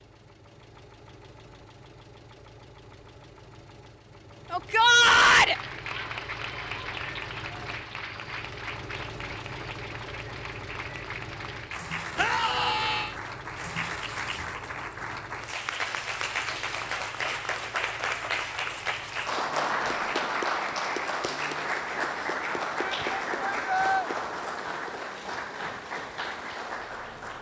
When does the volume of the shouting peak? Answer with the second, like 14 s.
5 s.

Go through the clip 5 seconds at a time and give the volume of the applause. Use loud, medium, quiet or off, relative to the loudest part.
off, medium, medium, loud, loud, medium.